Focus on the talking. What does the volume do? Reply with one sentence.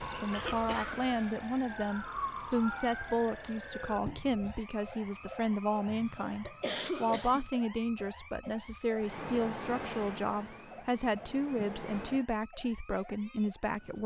The loudness of the talking stays about the same.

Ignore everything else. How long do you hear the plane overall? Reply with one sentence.
The plane can be heard for 3 seconds in total.